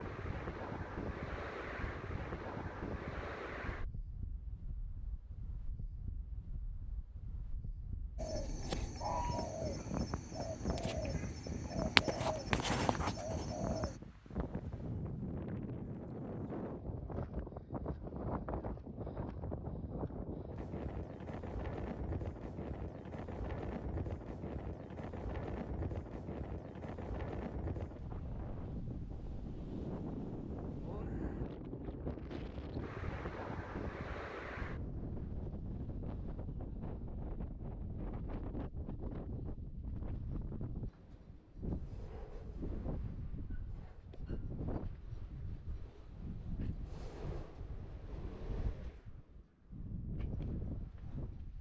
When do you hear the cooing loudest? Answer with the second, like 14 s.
12 s.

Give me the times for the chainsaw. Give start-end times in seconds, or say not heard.
not heard.